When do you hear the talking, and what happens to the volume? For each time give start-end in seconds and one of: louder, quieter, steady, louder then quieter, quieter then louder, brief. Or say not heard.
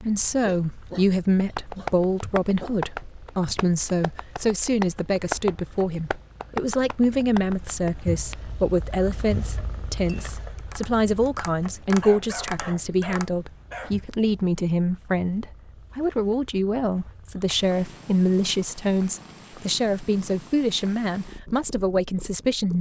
0.0-22.7 steady.